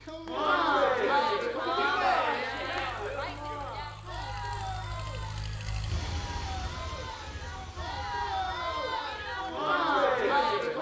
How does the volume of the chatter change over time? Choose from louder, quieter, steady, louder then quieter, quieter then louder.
quieter then louder.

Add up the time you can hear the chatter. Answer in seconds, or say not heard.
11 s.